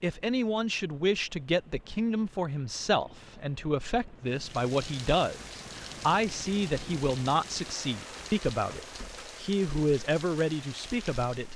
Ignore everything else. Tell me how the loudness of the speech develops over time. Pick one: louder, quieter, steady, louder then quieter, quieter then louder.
steady.